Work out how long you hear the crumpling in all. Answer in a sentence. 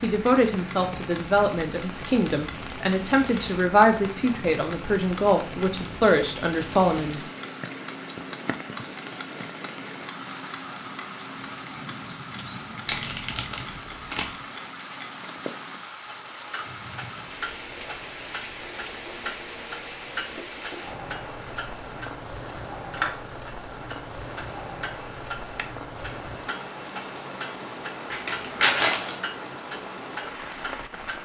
The crumpling can be heard for 4 seconds in total.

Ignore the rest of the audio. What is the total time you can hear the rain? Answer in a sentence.
You can hear the rain for 31 seconds altogether.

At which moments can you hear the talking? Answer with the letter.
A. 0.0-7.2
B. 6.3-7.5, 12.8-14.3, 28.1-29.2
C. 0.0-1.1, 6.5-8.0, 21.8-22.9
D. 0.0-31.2
A.